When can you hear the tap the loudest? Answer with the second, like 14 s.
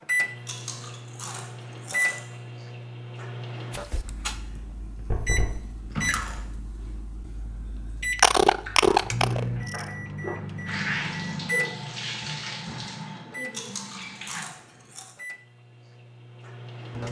11 s.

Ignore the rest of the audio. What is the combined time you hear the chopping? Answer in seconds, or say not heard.
not heard.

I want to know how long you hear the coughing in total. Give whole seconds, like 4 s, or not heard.
2 s.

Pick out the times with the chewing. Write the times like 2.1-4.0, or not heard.
0.5-2.2, 4.5-6.5, 8.6-10.8, 13.5-15.1.